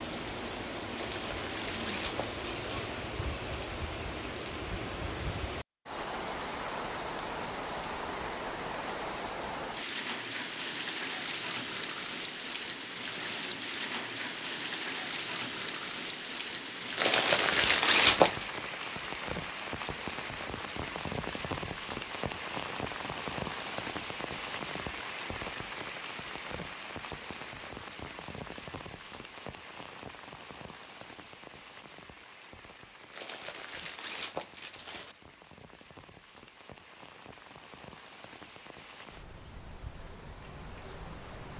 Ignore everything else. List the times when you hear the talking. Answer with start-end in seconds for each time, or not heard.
not heard.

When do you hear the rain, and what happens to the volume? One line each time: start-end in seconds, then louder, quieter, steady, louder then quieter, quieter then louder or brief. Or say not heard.
0.0-41.5 quieter.